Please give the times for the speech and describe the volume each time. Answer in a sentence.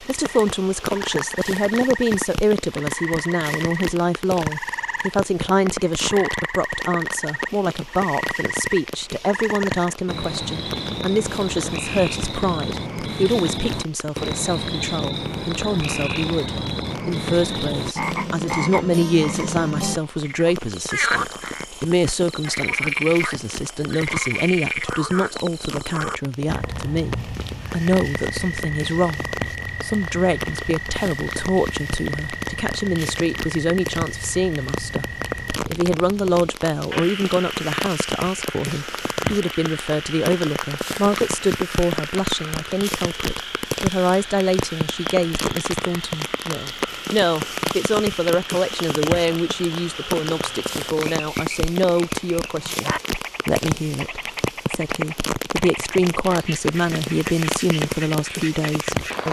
The speech can be heard from 0.0 to 35.0 s, at a steady volume; and from 35.6 to 59.2 s, at a steady volume.